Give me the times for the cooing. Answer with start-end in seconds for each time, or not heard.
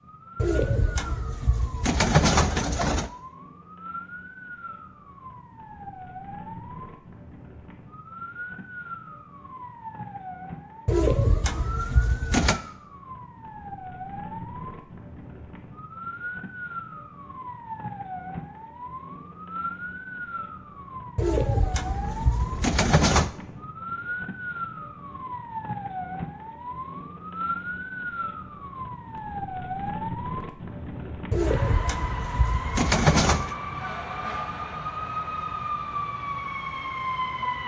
0.3-3.1, 10.8-12.6, 21.1-23.3, 31.3-33.5.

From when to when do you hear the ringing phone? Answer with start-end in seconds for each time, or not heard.
not heard.